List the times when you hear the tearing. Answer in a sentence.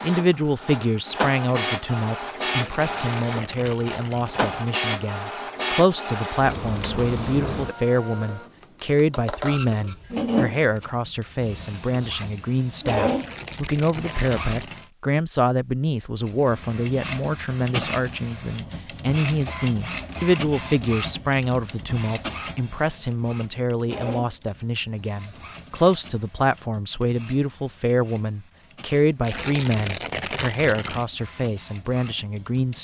The tearing can be heard from 2.5 to 4.5 s, from 13.2 to 14.9 s and from 29.2 to 31.1 s.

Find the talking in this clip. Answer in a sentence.
You can hear the talking from 0.0 to 32.7 s.